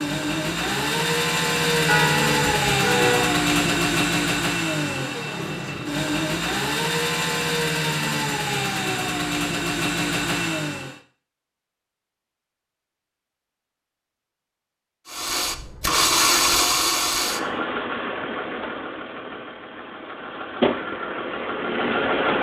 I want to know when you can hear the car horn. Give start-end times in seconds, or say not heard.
1.9-3.4.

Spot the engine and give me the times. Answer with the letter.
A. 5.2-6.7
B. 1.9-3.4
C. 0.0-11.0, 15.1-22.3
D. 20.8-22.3
C.